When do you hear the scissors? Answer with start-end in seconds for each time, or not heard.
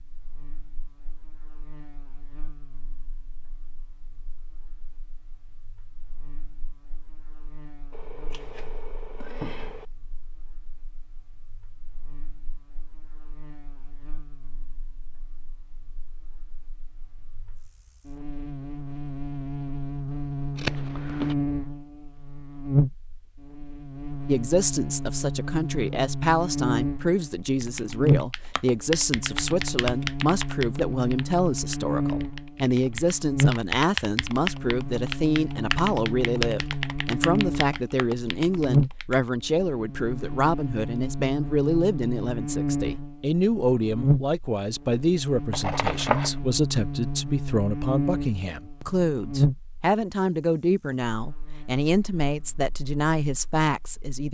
7.9-9.8, 20.6-21.4, 45.5-46.4.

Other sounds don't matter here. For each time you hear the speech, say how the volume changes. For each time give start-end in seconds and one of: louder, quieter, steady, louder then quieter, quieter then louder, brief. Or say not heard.
24.2-54.3 steady.